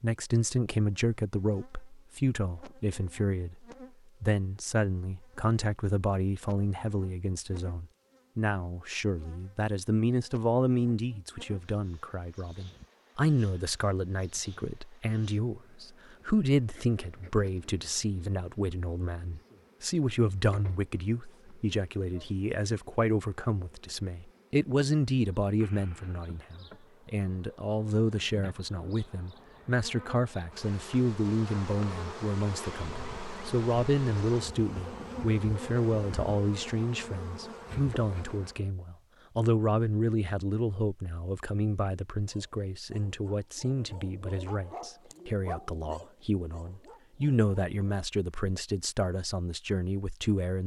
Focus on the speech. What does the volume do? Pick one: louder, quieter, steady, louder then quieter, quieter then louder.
steady.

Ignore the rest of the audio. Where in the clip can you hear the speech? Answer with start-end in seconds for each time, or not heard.
0.0-50.6.